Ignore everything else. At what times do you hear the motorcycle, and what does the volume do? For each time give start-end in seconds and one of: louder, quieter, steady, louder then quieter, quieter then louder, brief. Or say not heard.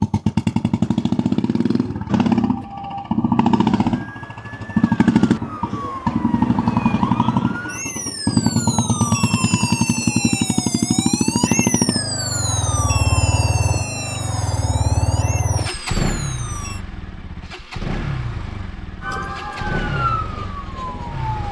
0.0-21.4 quieter.